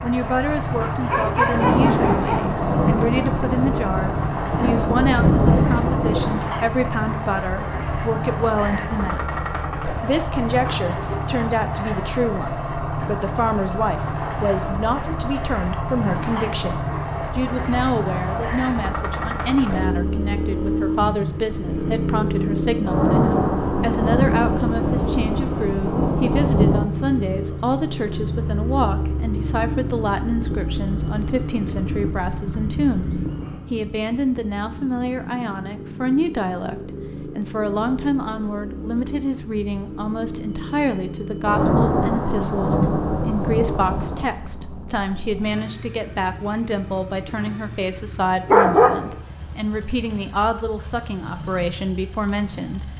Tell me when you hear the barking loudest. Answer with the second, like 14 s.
49 s.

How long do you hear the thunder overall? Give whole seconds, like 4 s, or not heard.
12 s.